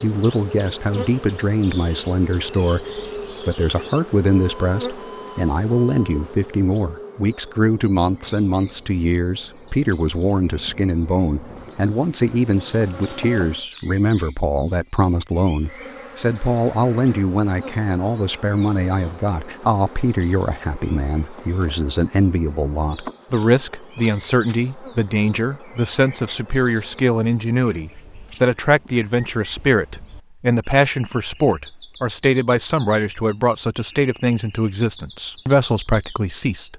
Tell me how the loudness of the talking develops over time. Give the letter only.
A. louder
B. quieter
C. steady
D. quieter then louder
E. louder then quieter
C.